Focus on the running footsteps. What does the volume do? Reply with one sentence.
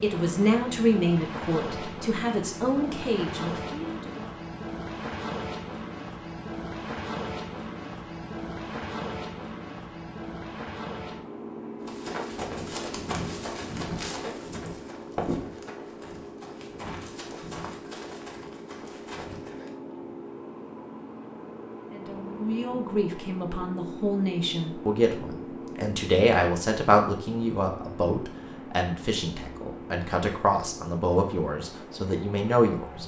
The volume of the running footsteps goes down.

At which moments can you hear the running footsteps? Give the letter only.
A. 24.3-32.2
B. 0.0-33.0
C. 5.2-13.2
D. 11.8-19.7
D.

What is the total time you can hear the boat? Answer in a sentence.
The boat can be heard for 33 seconds in total.